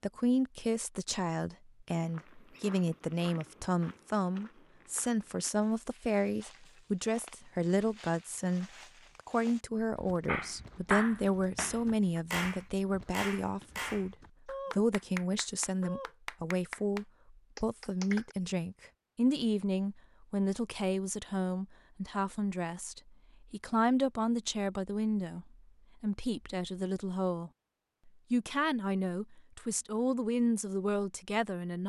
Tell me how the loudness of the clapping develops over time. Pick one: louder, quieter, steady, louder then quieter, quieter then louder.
quieter.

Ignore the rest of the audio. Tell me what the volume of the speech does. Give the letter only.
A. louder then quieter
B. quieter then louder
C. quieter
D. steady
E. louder
D.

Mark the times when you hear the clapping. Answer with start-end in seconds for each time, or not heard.
10.2-18.4.